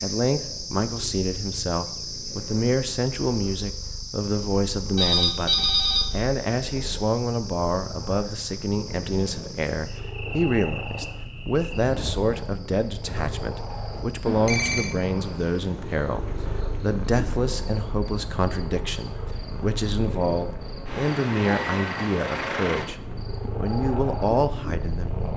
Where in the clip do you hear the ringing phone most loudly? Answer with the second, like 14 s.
6 s.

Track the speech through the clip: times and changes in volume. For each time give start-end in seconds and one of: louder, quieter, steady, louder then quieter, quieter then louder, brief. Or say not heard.
0.0-22.9 steady
23.6-25.1 brief.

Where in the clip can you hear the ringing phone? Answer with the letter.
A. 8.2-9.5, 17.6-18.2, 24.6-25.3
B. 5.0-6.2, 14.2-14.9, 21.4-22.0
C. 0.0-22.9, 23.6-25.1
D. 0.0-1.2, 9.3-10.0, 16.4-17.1
B.